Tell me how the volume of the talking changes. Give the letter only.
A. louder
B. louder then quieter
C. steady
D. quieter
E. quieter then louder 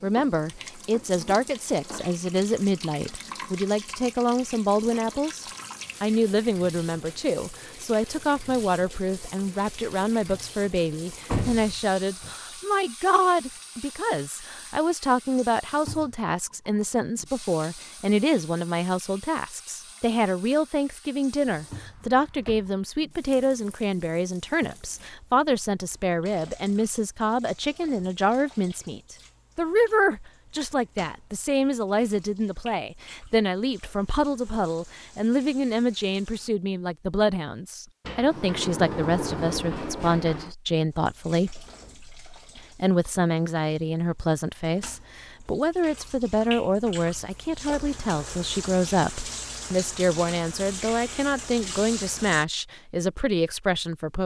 C.